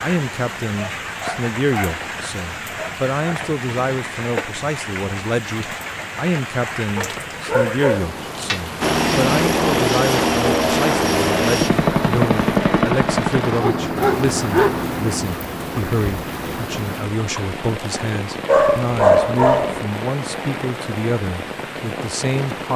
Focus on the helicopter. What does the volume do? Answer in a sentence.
The volume of the helicopter goes down.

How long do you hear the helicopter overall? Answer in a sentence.
You can hear the helicopter for 9 seconds altogether.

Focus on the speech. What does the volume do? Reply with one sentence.
The loudness of the speech stays about the same.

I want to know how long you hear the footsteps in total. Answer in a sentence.
The footsteps can't be heard in this clip.